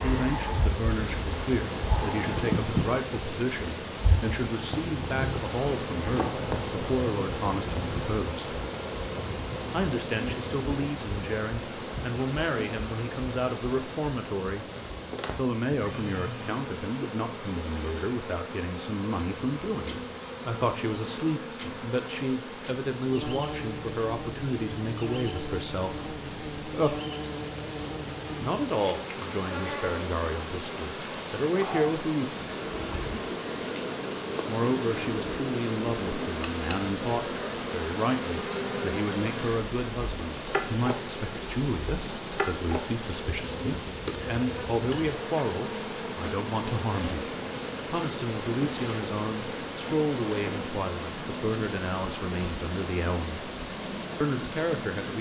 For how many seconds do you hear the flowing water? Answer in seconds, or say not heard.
55 s.